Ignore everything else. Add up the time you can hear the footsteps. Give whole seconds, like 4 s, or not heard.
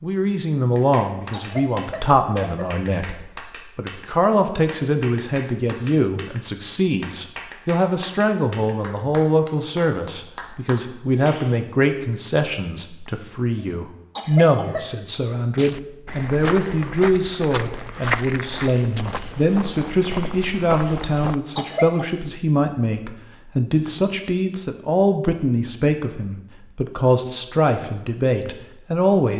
6 s.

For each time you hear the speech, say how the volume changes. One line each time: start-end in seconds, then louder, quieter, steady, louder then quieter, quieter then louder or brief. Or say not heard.
0.0-29.3 steady.